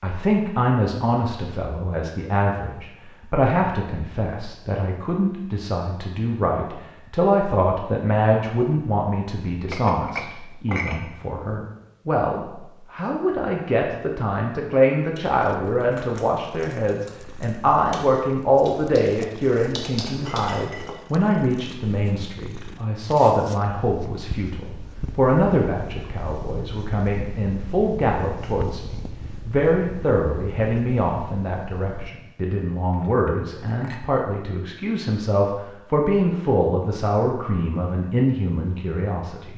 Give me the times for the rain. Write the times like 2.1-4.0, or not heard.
not heard.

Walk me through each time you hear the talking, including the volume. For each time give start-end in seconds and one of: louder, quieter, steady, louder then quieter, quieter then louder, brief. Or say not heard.
0.0-39.5 steady.